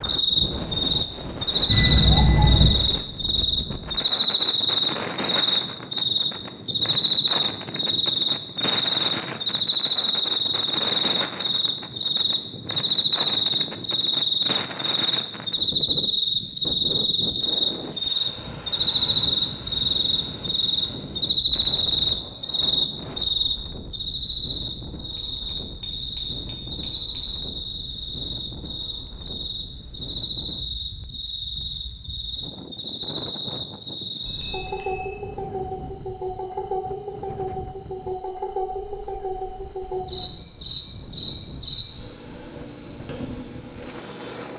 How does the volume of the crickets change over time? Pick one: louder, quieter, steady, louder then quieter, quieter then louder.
quieter.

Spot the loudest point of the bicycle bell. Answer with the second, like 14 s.
2 s.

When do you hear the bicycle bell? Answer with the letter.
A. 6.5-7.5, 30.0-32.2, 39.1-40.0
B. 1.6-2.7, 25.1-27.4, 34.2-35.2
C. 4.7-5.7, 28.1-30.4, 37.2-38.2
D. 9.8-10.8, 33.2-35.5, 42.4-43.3
B.